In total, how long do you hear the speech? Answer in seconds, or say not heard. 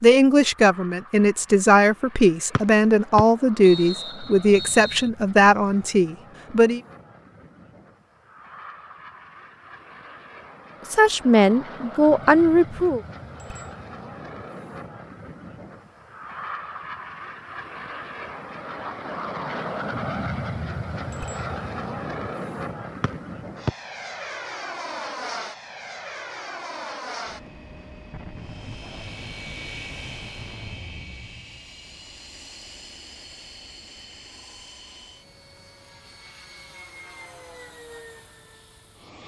9 s.